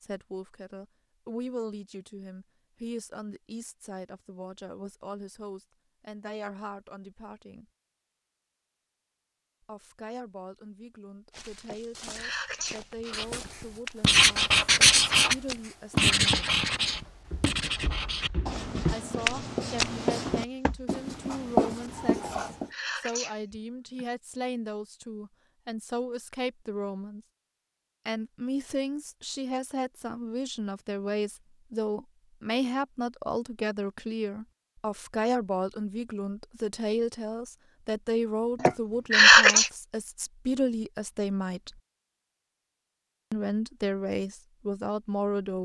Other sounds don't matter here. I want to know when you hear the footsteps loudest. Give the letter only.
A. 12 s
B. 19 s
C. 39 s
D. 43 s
B.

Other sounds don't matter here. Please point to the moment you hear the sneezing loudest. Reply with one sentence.
The loudest moment of the sneezing is at 39 seconds.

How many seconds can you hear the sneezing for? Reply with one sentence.
The sneezing can be heard for 5 seconds in total.